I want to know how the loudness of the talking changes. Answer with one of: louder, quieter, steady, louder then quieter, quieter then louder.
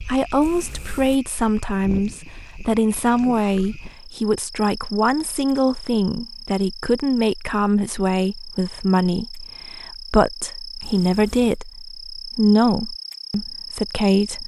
steady.